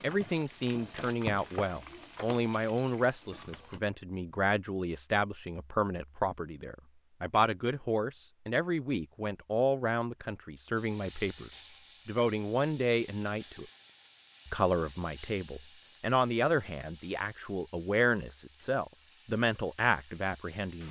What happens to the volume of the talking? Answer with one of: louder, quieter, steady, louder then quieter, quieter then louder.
steady.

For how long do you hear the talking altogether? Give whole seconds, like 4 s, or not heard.
20 s.